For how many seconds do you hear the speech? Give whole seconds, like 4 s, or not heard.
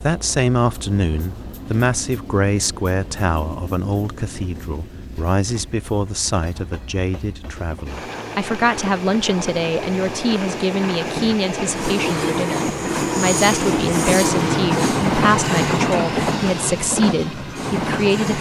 18 s.